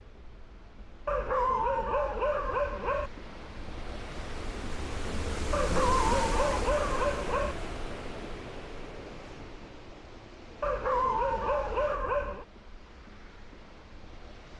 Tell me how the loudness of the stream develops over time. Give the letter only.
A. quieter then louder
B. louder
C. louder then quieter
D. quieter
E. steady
C.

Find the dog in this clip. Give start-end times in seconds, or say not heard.
1.1-3.1, 5.5-7.5, 10.6-12.4.